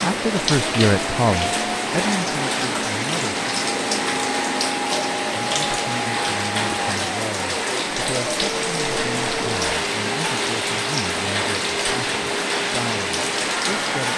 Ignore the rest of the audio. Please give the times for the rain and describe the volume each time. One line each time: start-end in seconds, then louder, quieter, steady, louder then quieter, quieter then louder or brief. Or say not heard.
0.0-14.1 steady.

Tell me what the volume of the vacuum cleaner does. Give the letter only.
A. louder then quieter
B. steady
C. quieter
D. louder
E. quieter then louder
B.